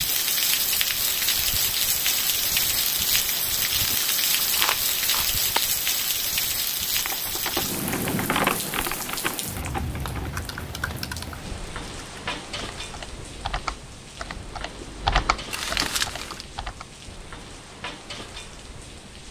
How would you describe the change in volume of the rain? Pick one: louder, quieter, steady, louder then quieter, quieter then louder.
quieter.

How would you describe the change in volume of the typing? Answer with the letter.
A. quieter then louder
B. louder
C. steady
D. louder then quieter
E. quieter
A.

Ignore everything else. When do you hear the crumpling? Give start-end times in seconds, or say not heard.
3.6-5.6, 15.5-16.4.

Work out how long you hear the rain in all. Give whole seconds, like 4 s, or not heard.
19 s.